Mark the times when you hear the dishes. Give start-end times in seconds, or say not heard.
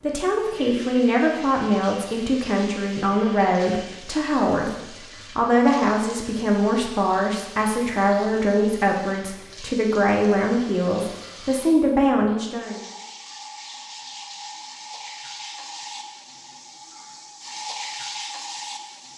not heard.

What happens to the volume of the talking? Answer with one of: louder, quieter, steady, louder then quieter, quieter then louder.
steady.